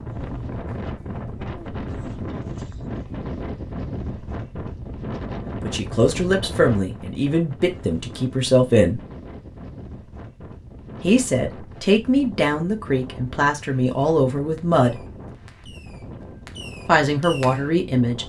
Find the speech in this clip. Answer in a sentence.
The speech can be heard from 5.6 to 9.0 s, from 11.0 to 14.9 s and from 16.9 to 18.2 s.